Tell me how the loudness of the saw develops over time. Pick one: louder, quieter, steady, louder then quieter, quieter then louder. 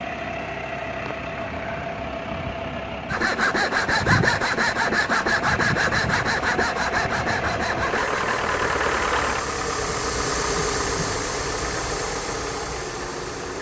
quieter.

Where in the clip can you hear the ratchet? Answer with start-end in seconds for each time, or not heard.
not heard.